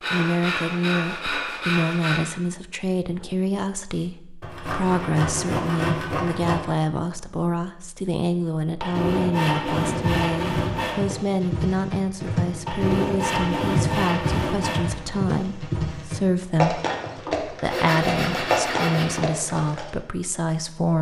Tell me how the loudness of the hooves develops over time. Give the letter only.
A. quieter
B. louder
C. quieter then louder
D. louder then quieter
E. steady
E.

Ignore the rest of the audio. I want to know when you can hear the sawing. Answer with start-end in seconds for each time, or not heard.
0.0-2.2, 4.4-6.6, 8.8-11.0, 12.7-14.8, 17.6-19.2.